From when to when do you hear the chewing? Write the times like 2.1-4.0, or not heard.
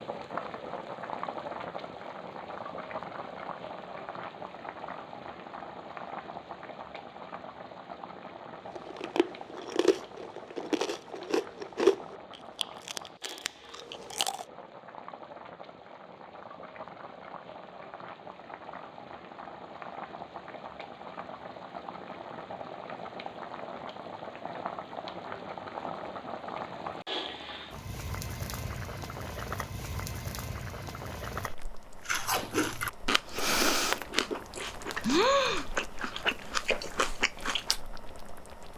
8.8-14.4, 32.0-37.8.